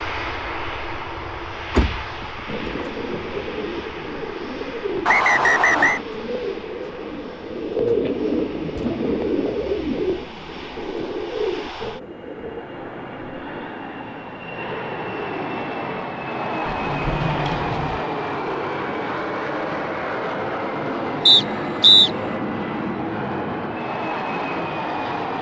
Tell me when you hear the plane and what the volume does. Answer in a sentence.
You can hear the plane from 0.0 to 25.3 s, getting quieter then louder.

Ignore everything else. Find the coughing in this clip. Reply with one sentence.
The coughing can't be heard in this clip.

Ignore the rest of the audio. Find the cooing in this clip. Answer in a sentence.
You can hear the cooing from 2.5 to 12.7 s.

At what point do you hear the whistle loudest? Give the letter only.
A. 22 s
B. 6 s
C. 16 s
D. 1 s
A.